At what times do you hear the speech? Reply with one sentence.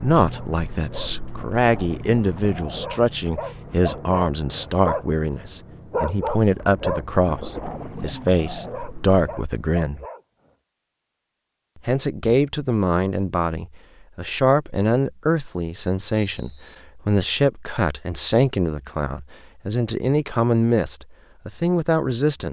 You can hear the speech from 0.0 to 10.1 s and from 11.8 to 22.4 s.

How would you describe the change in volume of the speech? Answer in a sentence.
The volume of the speech stays about the same.